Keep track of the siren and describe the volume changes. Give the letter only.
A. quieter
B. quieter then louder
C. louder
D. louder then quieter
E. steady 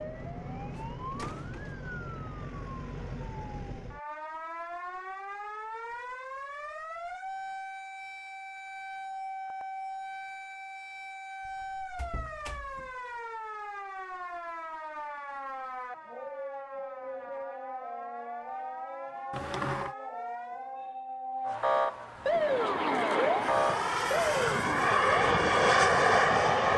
C.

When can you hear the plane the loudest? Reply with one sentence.
The volume of the plane peaks at 26 seconds.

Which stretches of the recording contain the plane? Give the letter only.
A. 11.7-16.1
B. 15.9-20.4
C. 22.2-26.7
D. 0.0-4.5
C.